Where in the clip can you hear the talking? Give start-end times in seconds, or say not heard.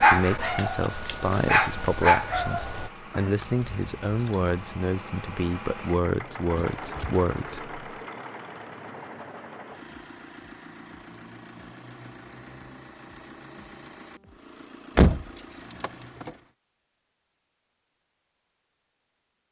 0.0-7.8.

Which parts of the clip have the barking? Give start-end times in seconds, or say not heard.
0.0-2.9.